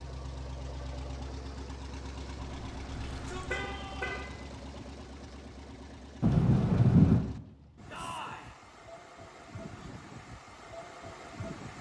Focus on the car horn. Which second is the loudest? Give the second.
7 s.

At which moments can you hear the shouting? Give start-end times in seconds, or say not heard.
3.0-4.2, 7.9-8.5.